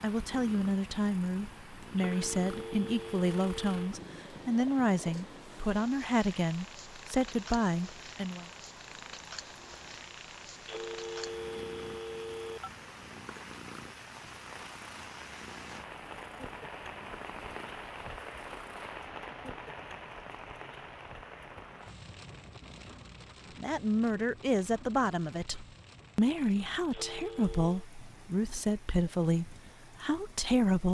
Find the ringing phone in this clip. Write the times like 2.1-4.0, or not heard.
1.9-4.0, 10.7-12.7, 26.9-27.9.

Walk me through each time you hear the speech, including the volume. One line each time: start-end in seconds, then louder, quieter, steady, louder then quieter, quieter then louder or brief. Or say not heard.
0.0-8.4 steady
23.6-30.8 steady.